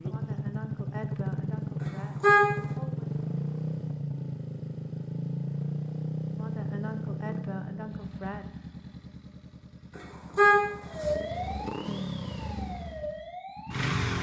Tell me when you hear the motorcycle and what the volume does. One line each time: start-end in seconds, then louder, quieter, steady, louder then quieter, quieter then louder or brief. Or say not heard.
0.0-14.1 quieter then louder.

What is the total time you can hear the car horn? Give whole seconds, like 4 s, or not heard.
2 s.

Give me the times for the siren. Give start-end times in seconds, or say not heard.
10.8-13.8.